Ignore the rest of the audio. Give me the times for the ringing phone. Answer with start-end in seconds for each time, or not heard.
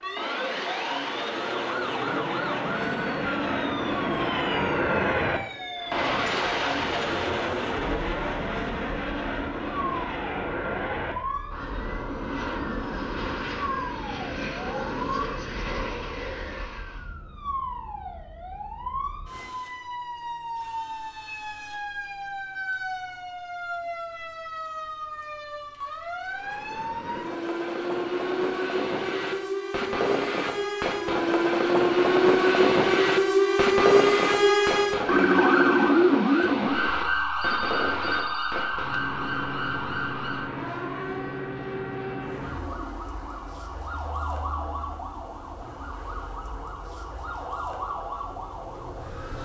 37.4-39.0.